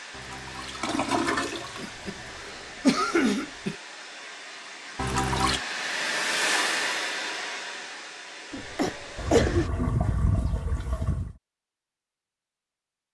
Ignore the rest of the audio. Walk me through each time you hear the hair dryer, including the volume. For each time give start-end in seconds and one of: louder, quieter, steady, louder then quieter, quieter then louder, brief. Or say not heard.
0.0-9.7 louder then quieter.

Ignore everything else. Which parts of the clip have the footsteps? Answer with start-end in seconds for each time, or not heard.
not heard.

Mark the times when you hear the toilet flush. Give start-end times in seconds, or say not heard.
0.1-2.5, 5.0-5.7, 9.2-11.3.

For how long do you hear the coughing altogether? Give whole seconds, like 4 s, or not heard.
3 s.